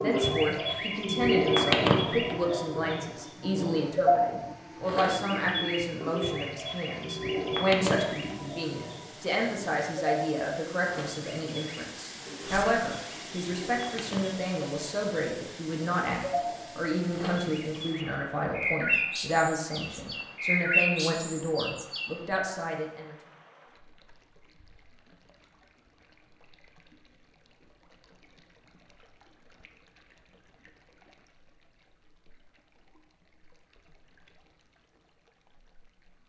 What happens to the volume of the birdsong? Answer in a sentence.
The volume of the birdsong goes down, then up.